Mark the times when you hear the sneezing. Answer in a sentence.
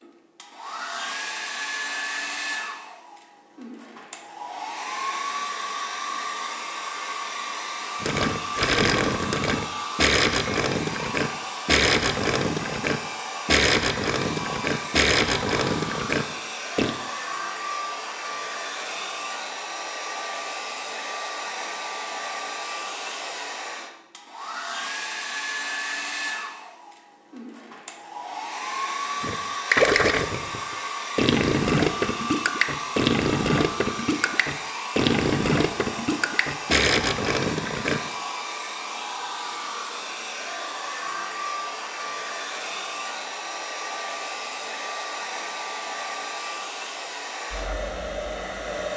You can't hear the sneezing here.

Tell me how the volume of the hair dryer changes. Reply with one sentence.
The loudness of the hair dryer stays about the same.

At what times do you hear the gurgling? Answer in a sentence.
The gurgling can be heard from 8.0 to 16.9 s and from 29.2 to 38.0 s.